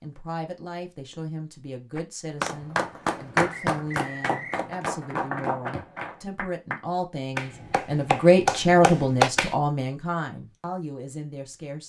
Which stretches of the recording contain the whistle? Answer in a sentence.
The whistle can be heard from 3.5 to 4.7 s.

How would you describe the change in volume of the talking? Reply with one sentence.
The volume of the talking goes up, then down.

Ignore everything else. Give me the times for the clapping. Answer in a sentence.
The clapping can be heard from 1.9 to 9.6 s.